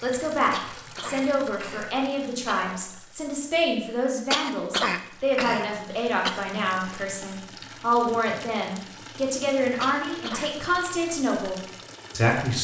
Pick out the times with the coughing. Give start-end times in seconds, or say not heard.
0.5-2.6, 4.3-6.5, 9.8-10.5.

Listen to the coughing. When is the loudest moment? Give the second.
5 s.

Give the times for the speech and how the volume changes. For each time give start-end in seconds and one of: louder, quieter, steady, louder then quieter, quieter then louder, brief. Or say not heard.
0.0-12.5 steady.